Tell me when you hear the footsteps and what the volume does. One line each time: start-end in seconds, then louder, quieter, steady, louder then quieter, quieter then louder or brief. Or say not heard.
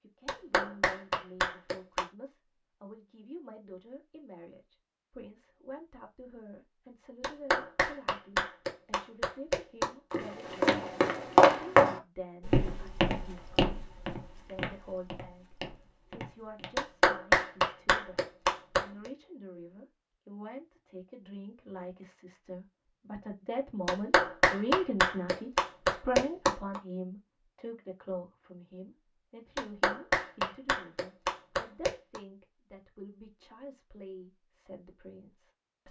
10.1-16.8 quieter.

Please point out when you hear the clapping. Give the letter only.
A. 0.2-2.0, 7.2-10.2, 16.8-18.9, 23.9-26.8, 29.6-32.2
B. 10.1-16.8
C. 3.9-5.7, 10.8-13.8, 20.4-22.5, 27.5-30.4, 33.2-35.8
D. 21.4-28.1
A.